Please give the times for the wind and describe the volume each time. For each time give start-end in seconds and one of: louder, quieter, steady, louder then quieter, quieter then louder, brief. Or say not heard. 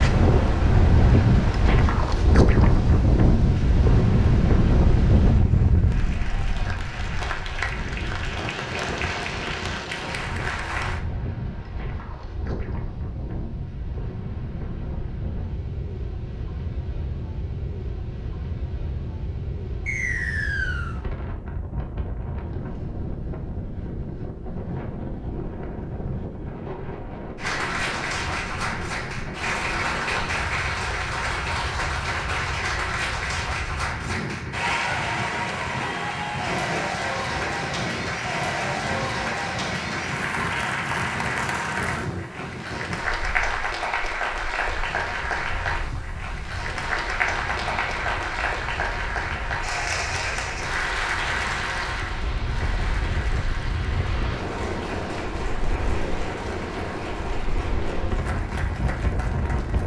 0.0-59.8 quieter.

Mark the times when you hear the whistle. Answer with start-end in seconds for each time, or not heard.
19.9-20.9.